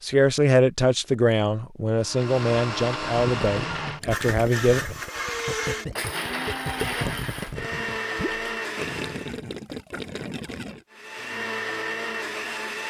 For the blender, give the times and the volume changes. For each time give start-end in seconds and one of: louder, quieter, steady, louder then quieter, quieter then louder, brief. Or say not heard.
1.9-9.4 steady
10.9-12.8 brief.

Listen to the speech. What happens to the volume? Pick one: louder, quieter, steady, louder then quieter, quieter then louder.
quieter.